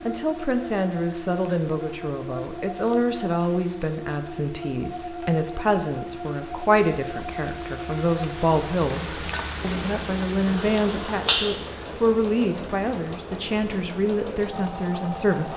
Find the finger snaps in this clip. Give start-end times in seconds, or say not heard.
10.4-11.5.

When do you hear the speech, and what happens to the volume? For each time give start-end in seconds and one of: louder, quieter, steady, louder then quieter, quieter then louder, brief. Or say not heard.
0.0-15.5 steady.